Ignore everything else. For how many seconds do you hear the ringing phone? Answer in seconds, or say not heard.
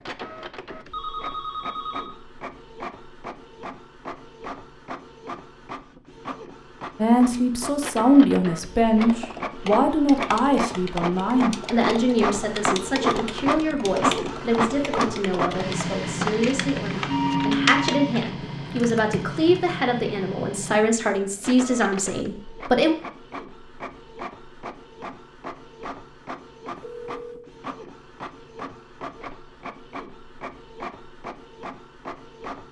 3 s.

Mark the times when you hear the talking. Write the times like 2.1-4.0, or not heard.
7.0-22.9.